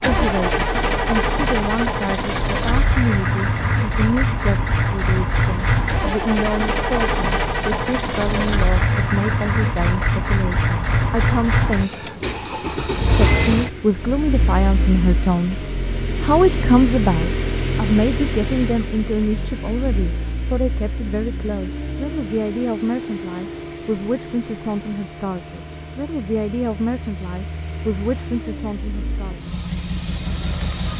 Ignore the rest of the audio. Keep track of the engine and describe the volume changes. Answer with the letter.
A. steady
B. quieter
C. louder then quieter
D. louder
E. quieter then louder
B.